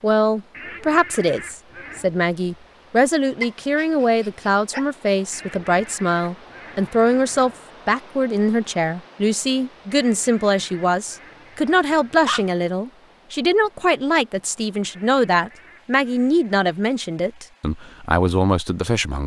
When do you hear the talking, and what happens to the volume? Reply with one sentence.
You can hear the talking from 0.0 to 19.2 s, at a steady volume.